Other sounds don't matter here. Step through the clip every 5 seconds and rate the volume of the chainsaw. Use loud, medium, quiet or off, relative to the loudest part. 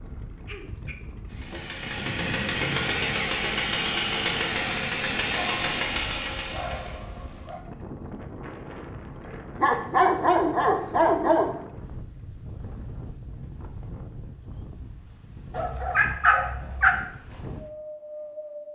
loud, loud, off, off.